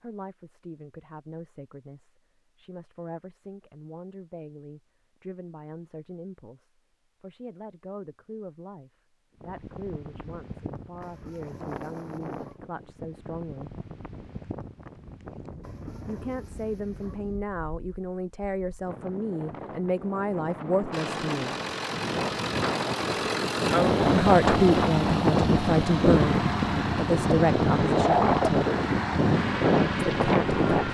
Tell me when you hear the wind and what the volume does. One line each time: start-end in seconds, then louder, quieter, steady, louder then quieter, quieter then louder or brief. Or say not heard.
9.3-30.8 louder.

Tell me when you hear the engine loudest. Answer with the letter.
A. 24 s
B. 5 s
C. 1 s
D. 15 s
A.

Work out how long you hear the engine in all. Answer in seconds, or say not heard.
10 s.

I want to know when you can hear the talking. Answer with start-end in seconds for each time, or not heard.
0.0-13.7, 16.1-21.5, 24.1-28.7, 30.1-30.6.